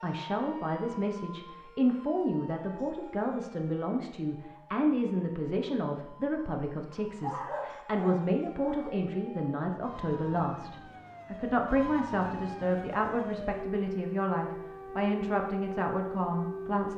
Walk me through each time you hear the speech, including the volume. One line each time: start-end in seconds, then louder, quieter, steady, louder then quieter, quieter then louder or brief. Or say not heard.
0.0-16.9 steady.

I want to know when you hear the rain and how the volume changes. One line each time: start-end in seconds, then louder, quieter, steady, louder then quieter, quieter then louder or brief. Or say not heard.
not heard.